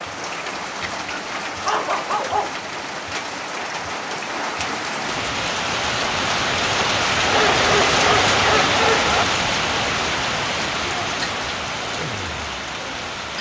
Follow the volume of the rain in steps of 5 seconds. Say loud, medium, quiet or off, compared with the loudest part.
medium, loud, medium.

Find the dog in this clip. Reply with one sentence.
You can hear the dog from 1.4 to 2.5 s and from 7.2 to 9.2 s.